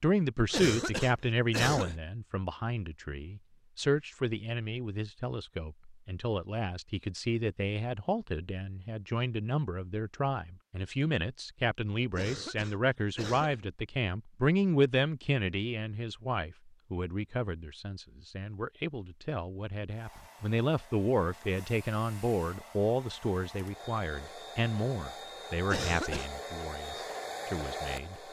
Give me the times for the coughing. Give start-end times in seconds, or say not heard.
0.5-2.0, 12.1-13.7, 25.6-26.3.